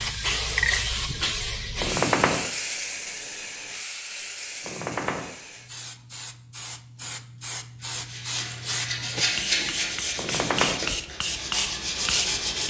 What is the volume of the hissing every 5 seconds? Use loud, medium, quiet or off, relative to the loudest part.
loud, medium, loud.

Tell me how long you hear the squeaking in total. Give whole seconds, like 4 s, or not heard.
2 s.